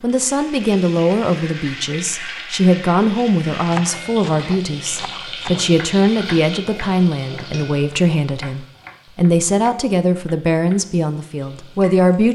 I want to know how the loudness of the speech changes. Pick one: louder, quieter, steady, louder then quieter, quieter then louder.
steady.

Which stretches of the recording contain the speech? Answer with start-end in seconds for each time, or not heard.
0.0-12.3.